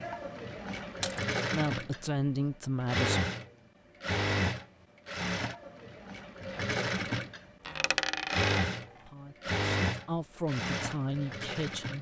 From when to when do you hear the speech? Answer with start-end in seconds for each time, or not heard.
1.5-3.2, 9.0-11.9.